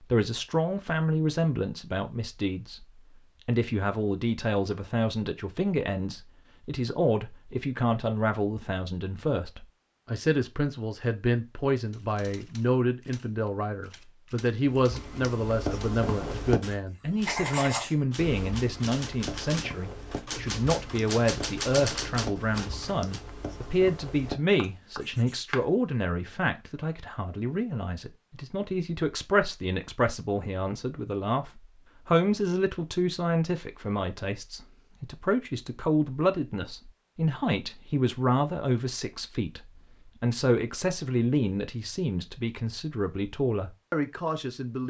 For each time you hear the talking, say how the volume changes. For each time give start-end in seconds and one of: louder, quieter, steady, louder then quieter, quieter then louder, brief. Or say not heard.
0.0-2.9 brief
3.5-44.8 steady.